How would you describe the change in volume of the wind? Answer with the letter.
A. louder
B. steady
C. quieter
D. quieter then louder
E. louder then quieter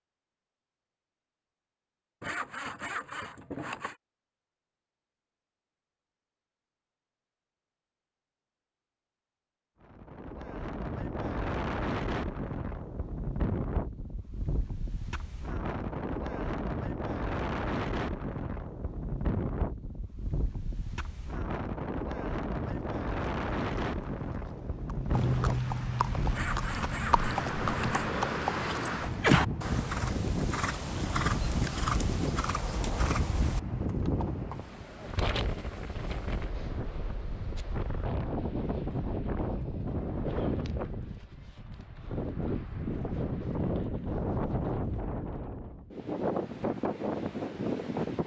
B.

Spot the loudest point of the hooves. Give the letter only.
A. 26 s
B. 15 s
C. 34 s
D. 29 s
D.